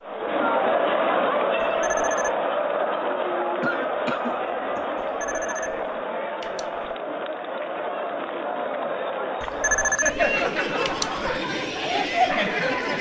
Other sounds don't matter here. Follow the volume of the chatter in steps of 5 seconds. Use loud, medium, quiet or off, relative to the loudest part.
loud, medium, loud.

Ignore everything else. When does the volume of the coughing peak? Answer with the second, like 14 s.
4 s.